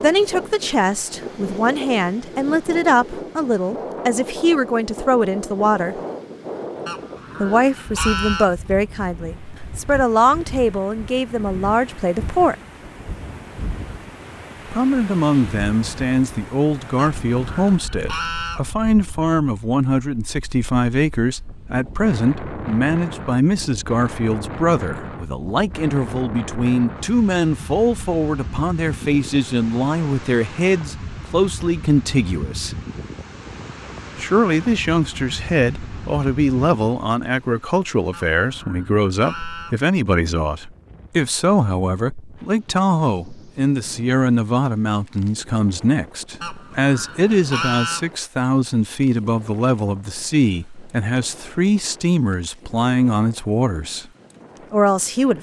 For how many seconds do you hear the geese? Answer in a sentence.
The geese can be heard for 7 seconds in total.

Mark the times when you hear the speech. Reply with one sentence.
You can hear the speech from 0.0 to 6.0 s, from 7.4 to 12.6 s, from 14.7 to 32.8 s, from 34.1 to 54.0 s and from 54.7 to 55.3 s.